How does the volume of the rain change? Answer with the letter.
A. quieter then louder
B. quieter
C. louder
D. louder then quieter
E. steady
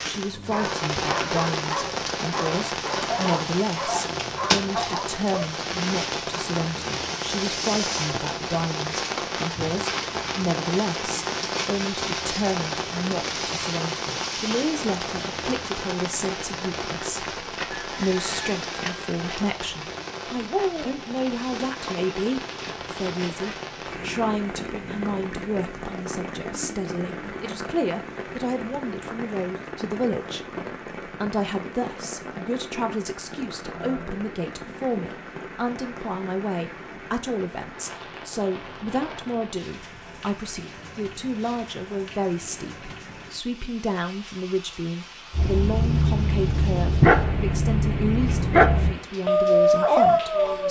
B.